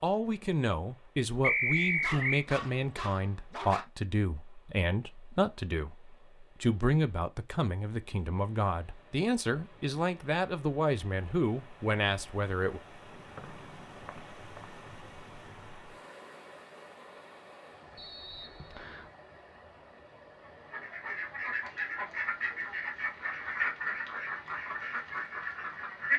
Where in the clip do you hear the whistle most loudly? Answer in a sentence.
The volume of the whistle peaks at 2 seconds.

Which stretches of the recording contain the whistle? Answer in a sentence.
The whistle can be heard from 1.4 to 2.5 s, from 13.3 to 14.8 s and from 17.9 to 19.1 s.